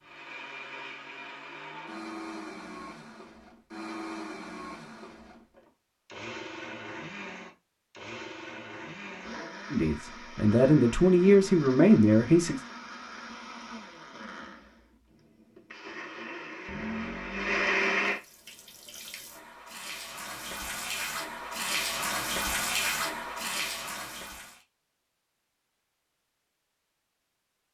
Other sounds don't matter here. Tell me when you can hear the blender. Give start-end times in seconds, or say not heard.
0.0-18.2.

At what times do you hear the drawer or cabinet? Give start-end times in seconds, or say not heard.
16.6-17.6.